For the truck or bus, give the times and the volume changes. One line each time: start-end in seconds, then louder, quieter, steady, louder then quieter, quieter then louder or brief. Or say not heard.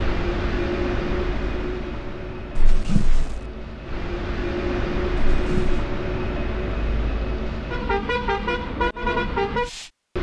0.0-10.1 quieter then louder.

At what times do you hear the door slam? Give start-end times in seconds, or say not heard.
2.5-3.4, 5.2-5.8.